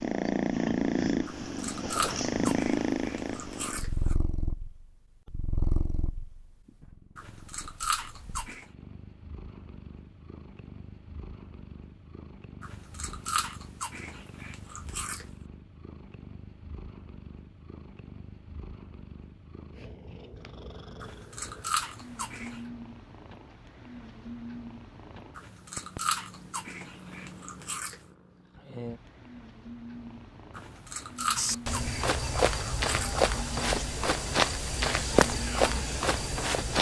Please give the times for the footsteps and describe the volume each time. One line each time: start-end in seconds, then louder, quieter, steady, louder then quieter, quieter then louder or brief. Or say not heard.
31.4-36.7 steady.